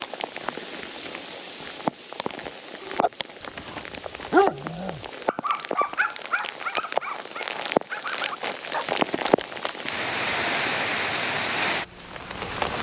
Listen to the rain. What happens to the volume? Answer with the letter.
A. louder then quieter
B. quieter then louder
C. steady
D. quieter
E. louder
E.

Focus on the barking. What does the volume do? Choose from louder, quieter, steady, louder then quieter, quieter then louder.
louder then quieter.